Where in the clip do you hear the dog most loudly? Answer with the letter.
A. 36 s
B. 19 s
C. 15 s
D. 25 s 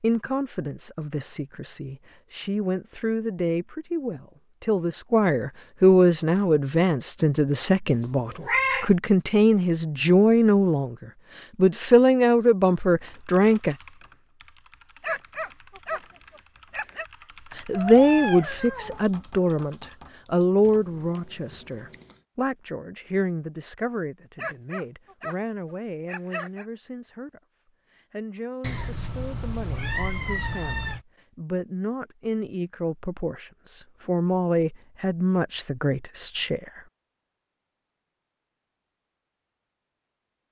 C.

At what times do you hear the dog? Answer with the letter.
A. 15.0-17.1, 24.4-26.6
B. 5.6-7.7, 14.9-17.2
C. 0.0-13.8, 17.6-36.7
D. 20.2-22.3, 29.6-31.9
A.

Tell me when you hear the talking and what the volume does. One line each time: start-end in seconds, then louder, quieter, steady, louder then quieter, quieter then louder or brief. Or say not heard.
0.0-13.8 louder
17.6-36.7 quieter then louder.